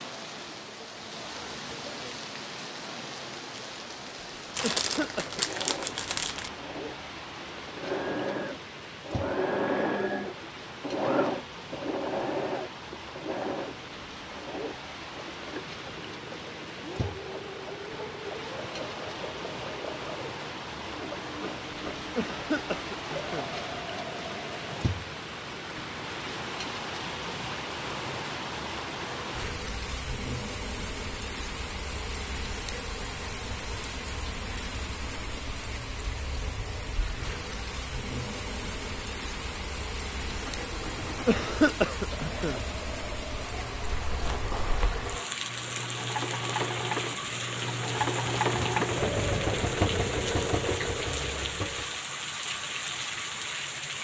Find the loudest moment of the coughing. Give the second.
42 s.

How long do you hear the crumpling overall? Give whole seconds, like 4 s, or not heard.
3 s.